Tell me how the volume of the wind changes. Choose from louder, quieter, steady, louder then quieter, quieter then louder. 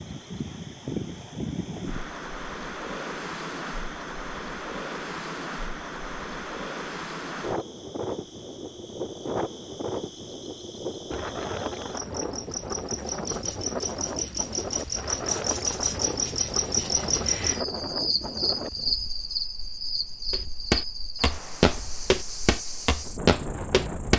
quieter.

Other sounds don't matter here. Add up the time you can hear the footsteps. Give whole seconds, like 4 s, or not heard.
4 s.